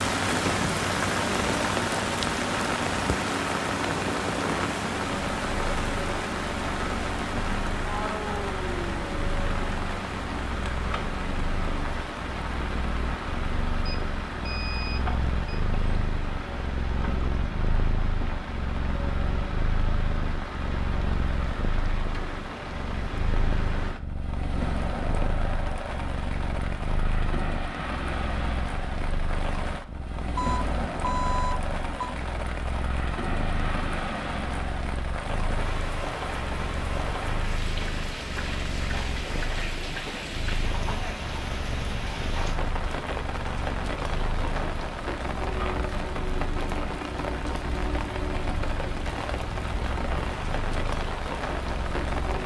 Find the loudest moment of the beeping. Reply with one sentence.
The loudest moment of the beeping is at 31 seconds.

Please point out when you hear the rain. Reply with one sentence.
You can hear the rain from 0.0 to 52.4 s.